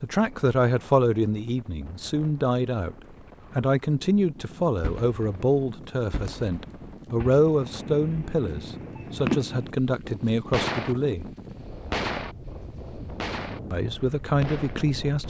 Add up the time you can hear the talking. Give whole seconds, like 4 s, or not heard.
13 s.